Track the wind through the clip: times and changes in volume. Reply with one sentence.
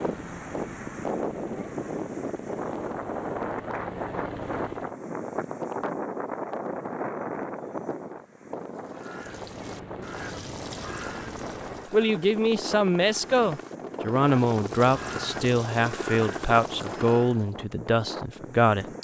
You can hear the wind from 0.0 to 18.9 s, getting quieter.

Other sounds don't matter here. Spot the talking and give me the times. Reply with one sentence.
The talking can be heard from 11.9 to 18.9 s.